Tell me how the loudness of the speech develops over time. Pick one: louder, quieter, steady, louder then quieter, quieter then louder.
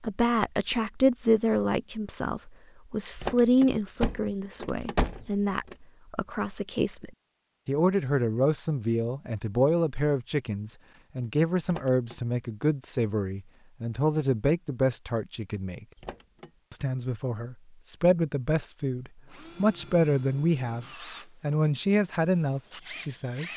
steady.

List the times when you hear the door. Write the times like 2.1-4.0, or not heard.
3.1-5.8, 11.7-12.2, 15.9-16.5.